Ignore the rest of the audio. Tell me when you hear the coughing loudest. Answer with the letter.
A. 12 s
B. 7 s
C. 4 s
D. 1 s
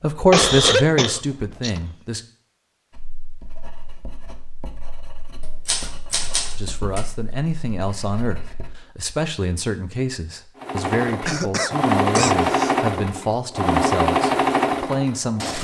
D.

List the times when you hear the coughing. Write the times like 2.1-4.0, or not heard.
0.3-1.8, 11.2-12.8.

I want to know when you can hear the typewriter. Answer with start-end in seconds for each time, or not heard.
5.4-7.0.